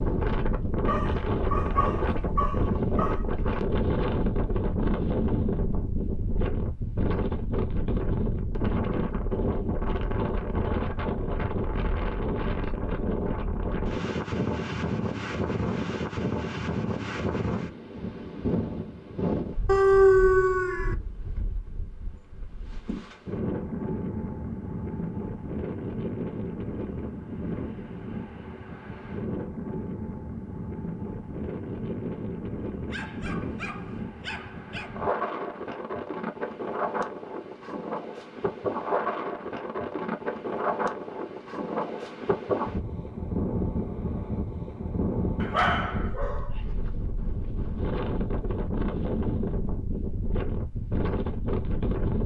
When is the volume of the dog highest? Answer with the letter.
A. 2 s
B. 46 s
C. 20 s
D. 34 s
C.